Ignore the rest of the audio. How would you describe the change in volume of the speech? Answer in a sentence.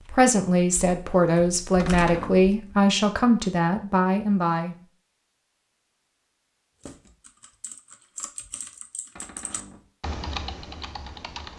The volume of the speech stays about the same.